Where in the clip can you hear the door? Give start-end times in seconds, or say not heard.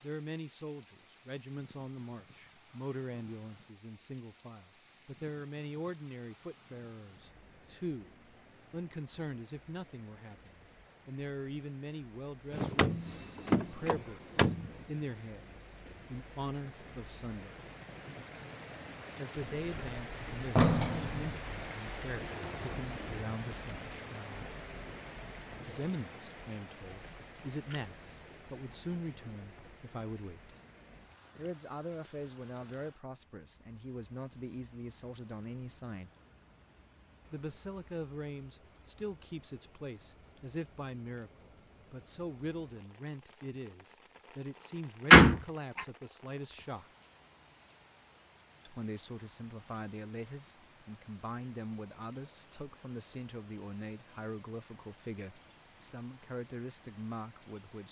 12.5-14.8, 19.6-21.4, 45.1-45.8.